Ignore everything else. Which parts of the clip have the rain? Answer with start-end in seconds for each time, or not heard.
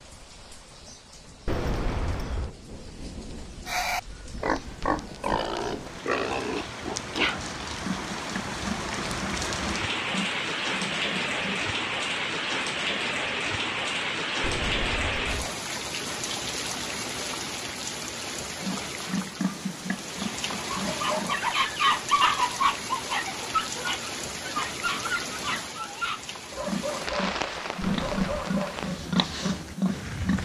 0.0-30.3.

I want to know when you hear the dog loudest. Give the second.
22 s.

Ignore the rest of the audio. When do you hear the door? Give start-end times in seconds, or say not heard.
1.4-2.5, 14.4-15.4, 27.8-28.5.